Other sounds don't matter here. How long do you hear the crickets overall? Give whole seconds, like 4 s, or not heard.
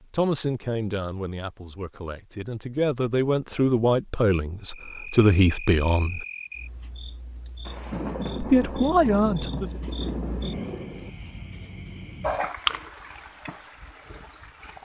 10 s.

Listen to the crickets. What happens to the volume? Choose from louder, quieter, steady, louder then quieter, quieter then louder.
quieter then louder.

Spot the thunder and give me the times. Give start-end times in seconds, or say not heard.
7.7-11.1.